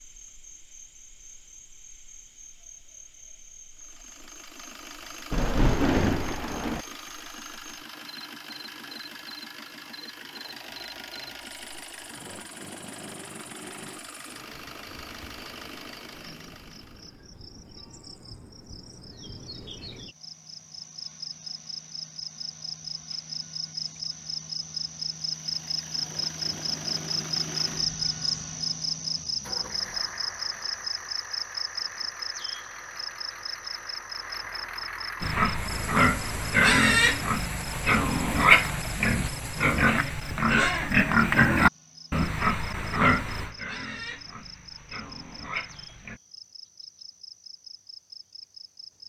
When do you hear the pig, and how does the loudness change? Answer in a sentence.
The pig can be heard from 35.2 to 46.2 s, getting quieter.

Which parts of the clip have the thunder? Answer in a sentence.
You can hear the thunder from 5.3 to 6.8 s.